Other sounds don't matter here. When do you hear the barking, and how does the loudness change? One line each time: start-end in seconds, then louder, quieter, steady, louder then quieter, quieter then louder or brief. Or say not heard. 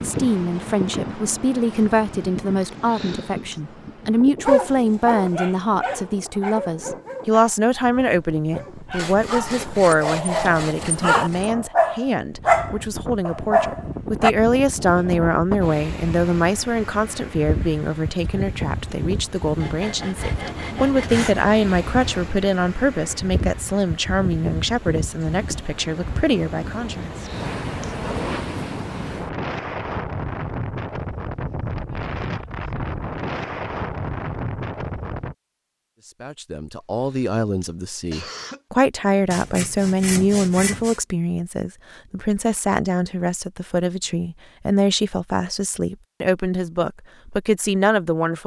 4.5-14.3 quieter then louder.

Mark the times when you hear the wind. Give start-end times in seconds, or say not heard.
0.0-35.4.